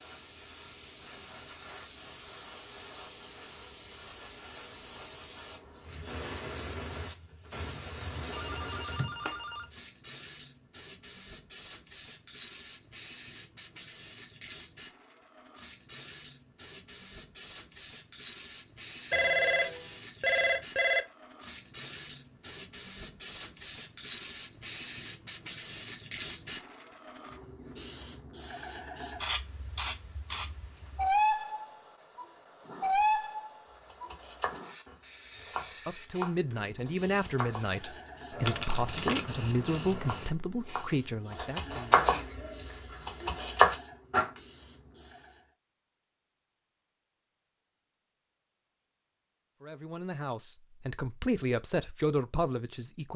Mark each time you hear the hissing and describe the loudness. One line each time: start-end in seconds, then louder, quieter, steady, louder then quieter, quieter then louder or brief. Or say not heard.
0.0-45.5 louder then quieter.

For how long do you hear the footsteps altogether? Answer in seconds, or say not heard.
not heard.